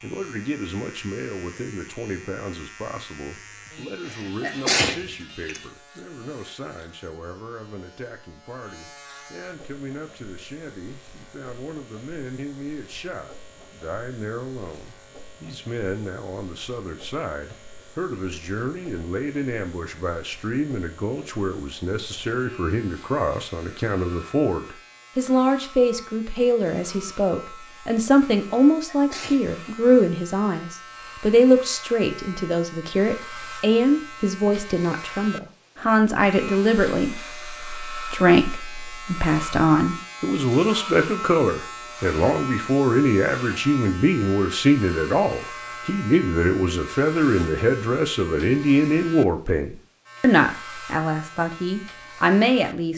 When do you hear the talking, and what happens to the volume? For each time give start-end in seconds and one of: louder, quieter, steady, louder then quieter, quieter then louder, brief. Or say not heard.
0.0-52.9 louder.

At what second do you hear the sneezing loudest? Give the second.
5 s.